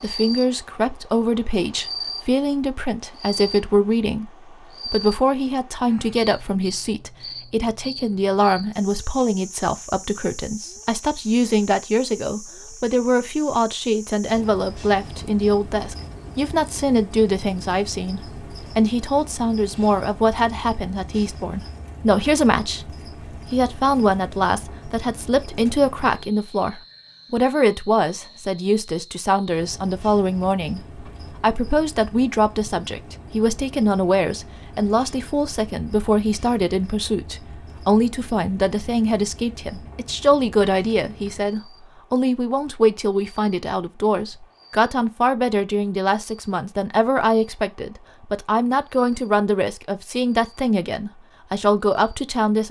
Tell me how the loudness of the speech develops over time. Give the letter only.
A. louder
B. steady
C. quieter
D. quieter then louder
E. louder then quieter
B.